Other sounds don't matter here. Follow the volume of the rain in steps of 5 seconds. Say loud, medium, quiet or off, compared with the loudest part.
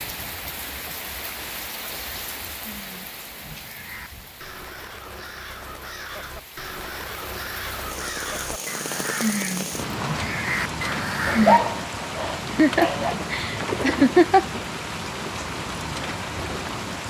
medium, medium, loud, loud.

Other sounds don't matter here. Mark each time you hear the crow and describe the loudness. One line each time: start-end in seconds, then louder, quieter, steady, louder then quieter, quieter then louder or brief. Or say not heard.
2.6-11.7 louder.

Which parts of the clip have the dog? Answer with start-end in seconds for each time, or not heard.
11.2-13.2.